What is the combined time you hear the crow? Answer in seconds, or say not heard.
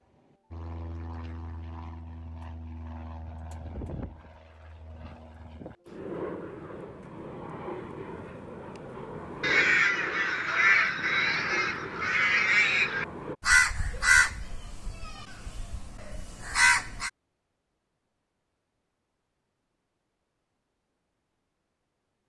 8 s.